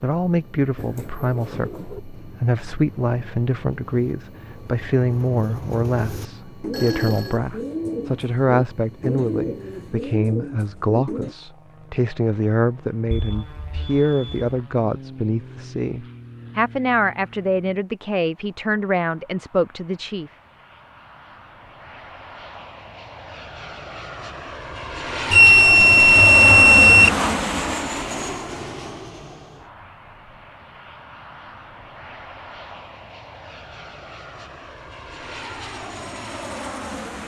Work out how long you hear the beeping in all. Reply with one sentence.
You can hear the beeping for 4 seconds altogether.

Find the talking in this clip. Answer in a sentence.
You can hear the talking from 0.0 to 20.3 s.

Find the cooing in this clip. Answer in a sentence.
You can hear the cooing from 0.8 to 11.3 s.